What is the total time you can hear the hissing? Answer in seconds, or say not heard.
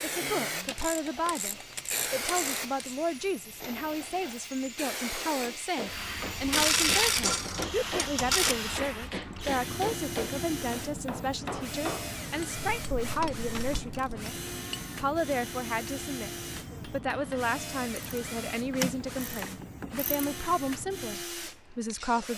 22 s.